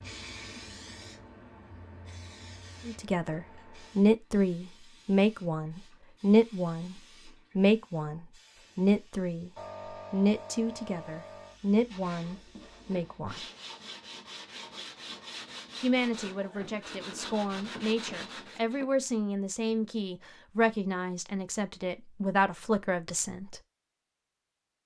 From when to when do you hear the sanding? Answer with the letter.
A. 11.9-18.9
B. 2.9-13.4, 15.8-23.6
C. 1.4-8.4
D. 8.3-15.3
A.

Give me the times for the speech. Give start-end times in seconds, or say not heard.
2.9-13.4, 15.8-23.6.